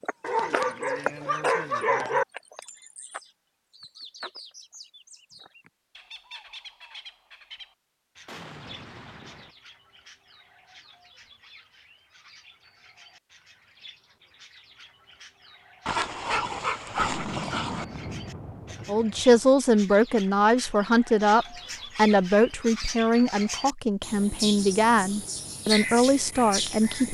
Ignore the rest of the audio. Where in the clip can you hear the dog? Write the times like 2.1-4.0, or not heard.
0.2-2.2, 15.8-17.9.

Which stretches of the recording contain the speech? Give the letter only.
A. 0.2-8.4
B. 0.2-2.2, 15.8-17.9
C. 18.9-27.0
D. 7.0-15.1
C.